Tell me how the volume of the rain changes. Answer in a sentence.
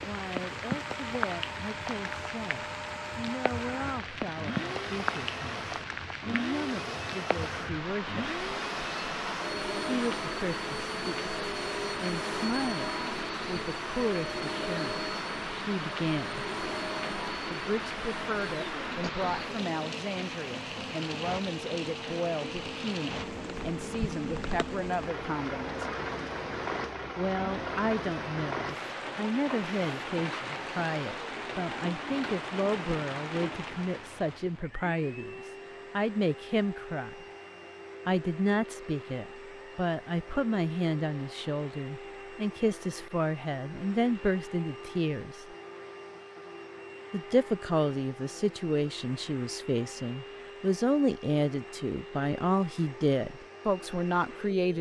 The loudness of the rain stays about the same.